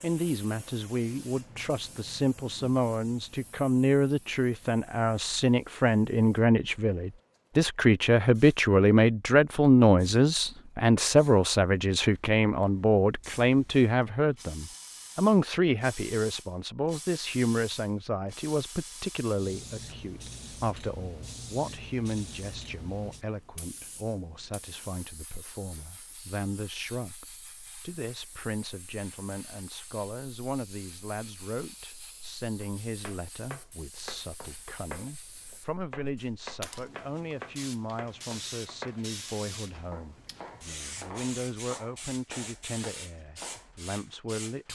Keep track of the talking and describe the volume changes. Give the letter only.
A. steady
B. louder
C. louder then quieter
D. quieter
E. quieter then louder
D.